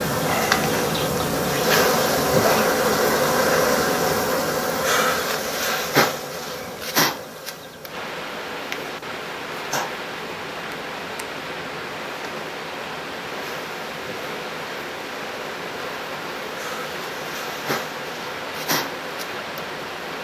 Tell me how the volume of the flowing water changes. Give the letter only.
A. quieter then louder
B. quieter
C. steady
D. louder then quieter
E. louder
C.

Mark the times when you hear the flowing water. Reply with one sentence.
The flowing water can be heard from 7.8 to 20.1 s.